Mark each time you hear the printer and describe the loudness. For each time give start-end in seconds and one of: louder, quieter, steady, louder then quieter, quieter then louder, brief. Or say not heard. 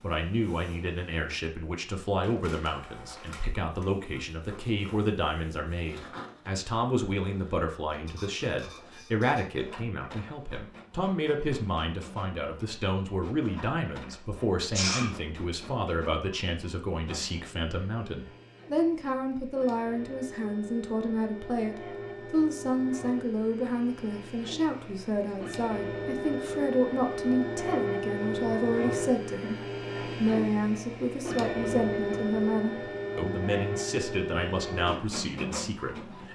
0.0-36.3 louder.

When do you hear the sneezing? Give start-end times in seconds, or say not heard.
14.7-15.1.